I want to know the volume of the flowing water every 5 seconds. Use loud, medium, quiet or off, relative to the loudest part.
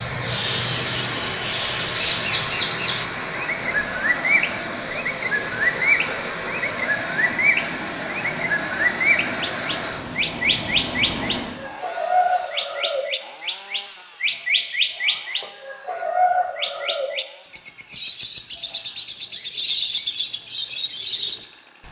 loud, loud, loud, off, off.